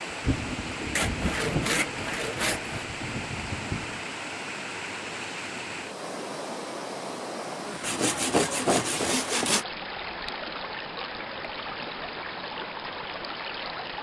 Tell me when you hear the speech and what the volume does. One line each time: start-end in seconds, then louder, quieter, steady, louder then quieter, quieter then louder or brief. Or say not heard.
not heard.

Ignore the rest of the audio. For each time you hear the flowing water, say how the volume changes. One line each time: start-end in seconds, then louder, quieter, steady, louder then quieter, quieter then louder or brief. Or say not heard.
0.0-13.9 steady.